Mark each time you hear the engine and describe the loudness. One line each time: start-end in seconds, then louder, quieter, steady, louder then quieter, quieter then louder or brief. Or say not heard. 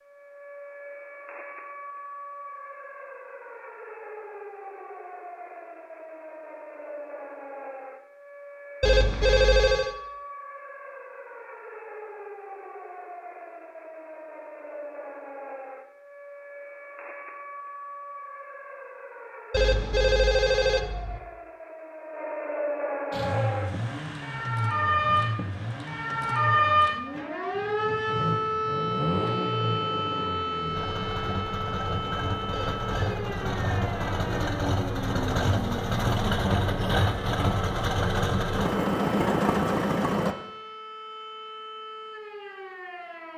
23.1-40.4 louder.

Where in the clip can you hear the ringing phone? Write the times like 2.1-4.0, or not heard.
8.8-9.9, 19.5-21.2, 32.5-33.2.